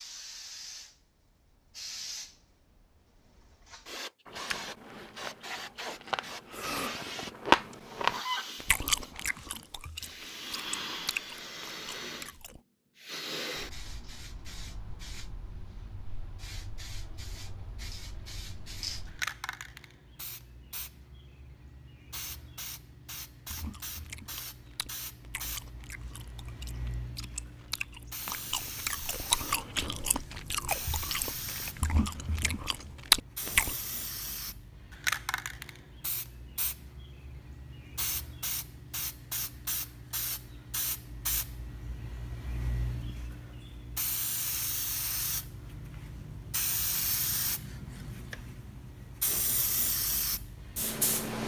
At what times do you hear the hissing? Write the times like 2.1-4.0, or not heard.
0.0-51.4.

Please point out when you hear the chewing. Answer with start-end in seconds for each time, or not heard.
4.2-12.6, 23.5-33.8.